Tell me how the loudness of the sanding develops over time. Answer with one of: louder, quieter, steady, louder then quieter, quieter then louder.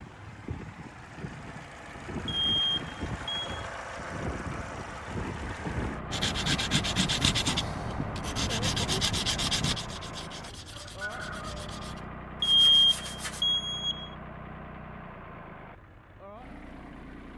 quieter.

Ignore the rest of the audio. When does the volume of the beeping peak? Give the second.
13 s.